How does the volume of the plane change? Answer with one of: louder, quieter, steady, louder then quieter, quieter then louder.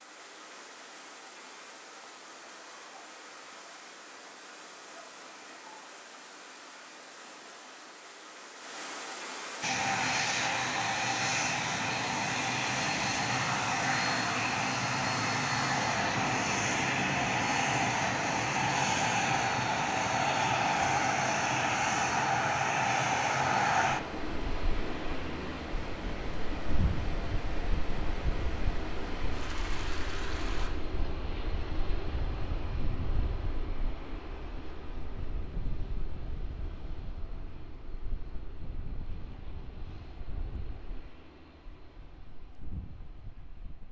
quieter.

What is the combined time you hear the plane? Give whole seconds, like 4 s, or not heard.
34 s.